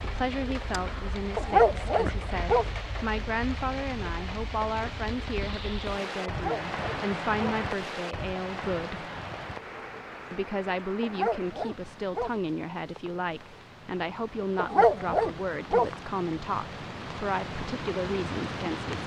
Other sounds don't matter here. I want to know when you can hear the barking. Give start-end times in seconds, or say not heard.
1.4-2.6, 6.2-7.5, 11.0-12.3, 14.6-15.9.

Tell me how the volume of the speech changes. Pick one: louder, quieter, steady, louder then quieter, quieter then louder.
steady.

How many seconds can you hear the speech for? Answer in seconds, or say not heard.
18 s.